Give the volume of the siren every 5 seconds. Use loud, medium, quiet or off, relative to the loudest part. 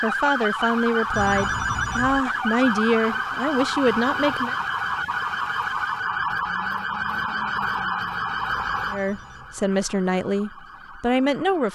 loud, loud, quiet.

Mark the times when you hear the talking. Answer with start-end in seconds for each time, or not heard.
0.0-4.5, 8.9-11.7.